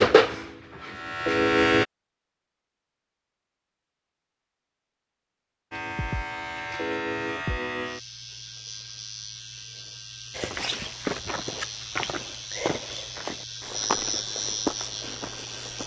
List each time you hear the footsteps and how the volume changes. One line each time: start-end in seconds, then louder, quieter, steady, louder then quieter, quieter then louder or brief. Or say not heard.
10.3-15.8 steady.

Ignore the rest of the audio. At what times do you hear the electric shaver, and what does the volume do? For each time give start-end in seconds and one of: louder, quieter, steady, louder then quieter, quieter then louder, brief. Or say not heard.
0.0-1.9 brief
5.7-15.8 quieter then louder.